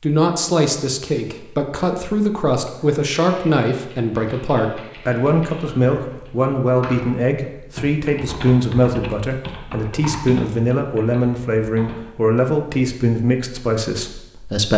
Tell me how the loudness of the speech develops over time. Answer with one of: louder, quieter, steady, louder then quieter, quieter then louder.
steady.